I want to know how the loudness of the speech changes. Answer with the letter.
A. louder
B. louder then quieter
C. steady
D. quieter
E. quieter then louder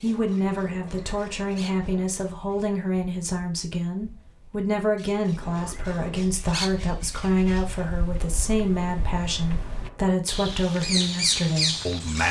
C.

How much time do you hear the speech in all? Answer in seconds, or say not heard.
12 s.